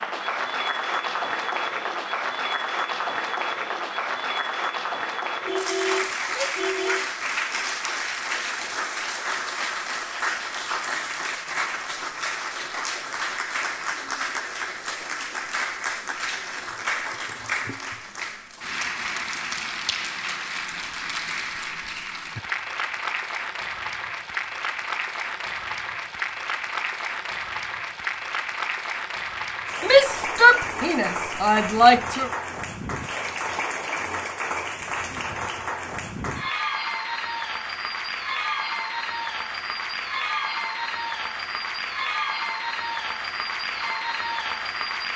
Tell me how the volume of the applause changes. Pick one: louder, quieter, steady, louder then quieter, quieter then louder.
steady.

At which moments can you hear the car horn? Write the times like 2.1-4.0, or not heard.
5.5-7.0.